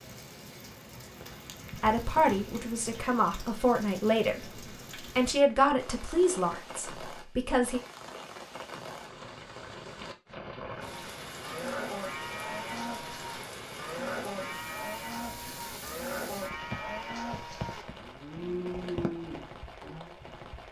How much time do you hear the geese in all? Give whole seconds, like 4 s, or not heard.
not heard.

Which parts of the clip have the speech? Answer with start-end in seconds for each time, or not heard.
1.8-7.8.